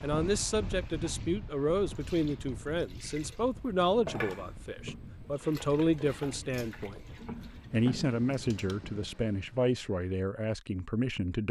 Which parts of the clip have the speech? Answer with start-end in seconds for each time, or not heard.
0.0-7.0, 7.7-11.4.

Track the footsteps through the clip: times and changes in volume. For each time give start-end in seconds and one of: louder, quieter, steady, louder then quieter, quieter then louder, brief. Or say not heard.
not heard.